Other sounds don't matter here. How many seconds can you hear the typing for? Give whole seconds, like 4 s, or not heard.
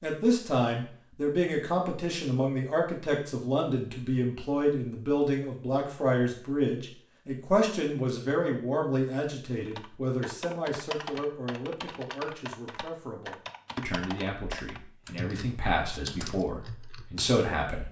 8 s.